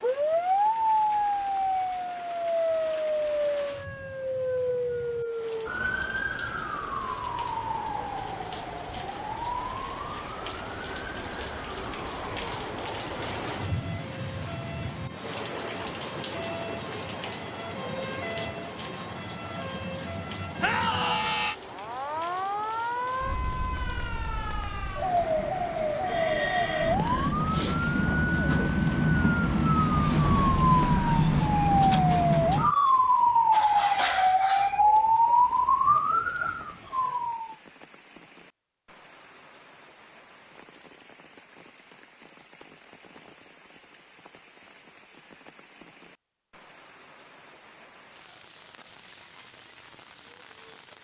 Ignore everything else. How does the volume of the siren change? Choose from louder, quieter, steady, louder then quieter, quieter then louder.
quieter then louder.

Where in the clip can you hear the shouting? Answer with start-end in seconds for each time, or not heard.
20.6-21.6.